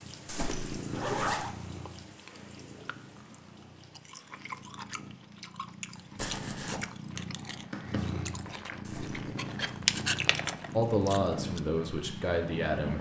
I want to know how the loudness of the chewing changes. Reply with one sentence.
The loudness of the chewing goes up.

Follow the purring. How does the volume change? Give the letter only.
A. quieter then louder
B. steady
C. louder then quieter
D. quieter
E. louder
A.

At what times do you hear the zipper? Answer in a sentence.
The zipper can be heard from 0.2 to 1.5 s, from 6.2 to 6.8 s and from 8.8 to 9.8 s.